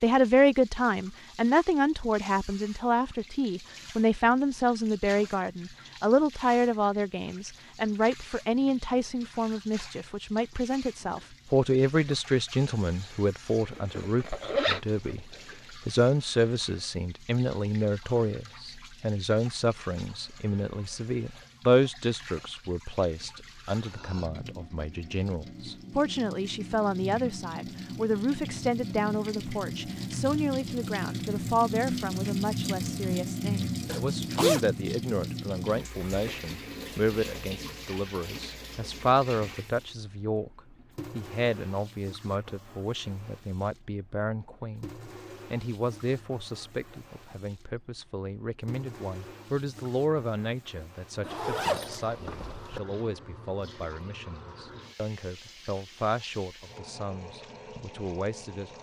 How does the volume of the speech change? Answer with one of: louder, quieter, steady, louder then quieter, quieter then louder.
quieter.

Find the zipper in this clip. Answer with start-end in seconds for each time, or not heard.
13.7-15.2, 33.9-34.6, 51.2-52.8.